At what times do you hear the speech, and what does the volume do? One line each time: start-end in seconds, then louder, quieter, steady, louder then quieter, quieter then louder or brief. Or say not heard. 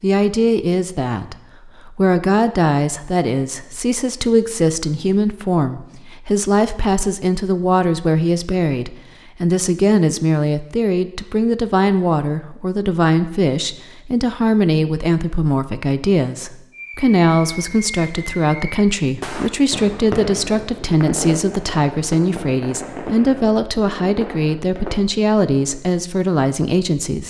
0.0-27.2 steady.